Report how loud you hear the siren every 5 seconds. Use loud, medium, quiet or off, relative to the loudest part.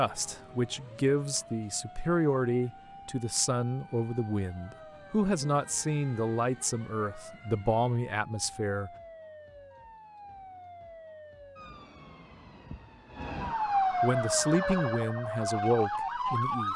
quiet, quiet, loud, loud.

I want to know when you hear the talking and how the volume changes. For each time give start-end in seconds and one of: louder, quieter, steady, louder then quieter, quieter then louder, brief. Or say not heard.
0.0-8.9 steady
14.0-16.7 brief.